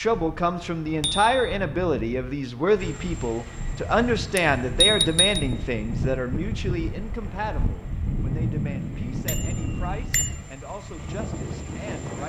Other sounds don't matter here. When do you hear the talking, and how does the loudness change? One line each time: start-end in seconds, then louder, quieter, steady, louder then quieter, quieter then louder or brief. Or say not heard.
0.0-12.2 quieter.